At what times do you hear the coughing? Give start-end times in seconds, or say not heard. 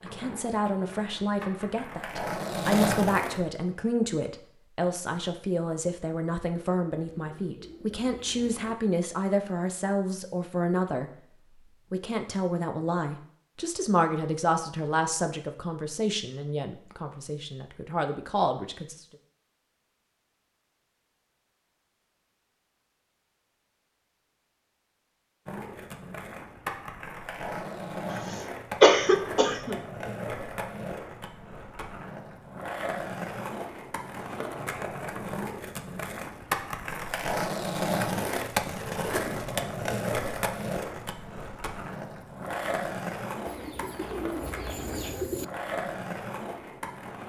28.8-29.8.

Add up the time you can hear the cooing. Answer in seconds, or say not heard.
4 s.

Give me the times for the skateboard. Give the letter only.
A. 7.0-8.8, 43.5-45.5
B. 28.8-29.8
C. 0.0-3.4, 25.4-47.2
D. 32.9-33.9
C.